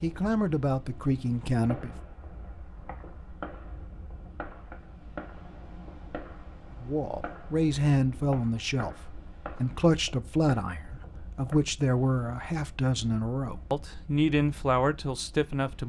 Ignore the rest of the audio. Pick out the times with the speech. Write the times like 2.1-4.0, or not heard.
0.0-1.9, 6.8-15.8.